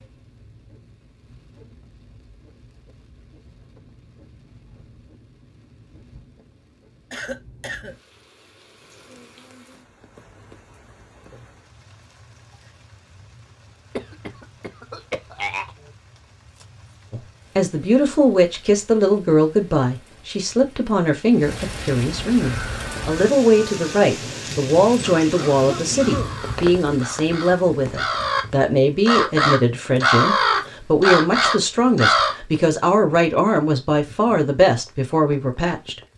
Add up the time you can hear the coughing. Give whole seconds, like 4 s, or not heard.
4 s.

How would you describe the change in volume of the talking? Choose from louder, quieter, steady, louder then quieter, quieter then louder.
steady.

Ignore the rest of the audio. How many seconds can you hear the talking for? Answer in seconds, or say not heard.
19 s.